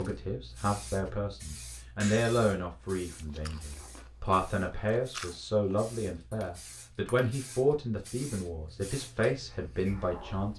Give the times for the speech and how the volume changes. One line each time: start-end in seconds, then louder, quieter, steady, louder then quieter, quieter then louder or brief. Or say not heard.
0.0-10.5 steady.